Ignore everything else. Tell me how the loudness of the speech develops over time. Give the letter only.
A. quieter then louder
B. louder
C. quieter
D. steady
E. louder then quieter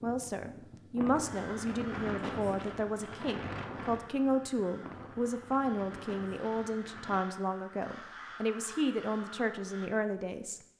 D.